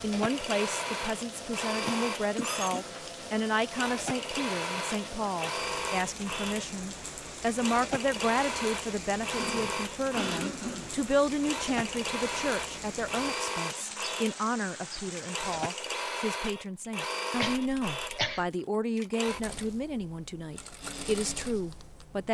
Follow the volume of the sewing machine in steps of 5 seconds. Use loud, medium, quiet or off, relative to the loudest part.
loud, loud, loud, loud, medium.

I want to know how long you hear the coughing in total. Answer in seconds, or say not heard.
4 s.